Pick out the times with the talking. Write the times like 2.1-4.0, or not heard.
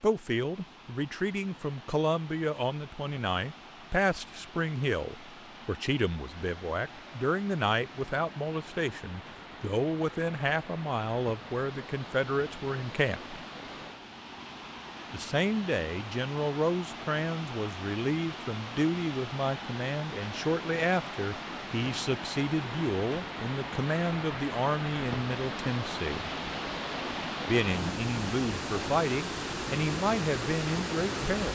0.0-13.4, 15.1-26.2, 27.4-31.5.